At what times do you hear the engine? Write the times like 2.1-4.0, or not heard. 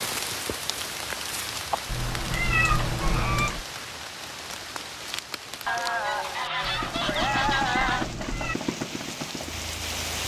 6.8-10.1.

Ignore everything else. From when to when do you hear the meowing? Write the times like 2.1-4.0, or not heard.
1.9-3.6, 6.6-8.6.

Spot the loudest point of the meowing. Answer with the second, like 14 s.
3 s.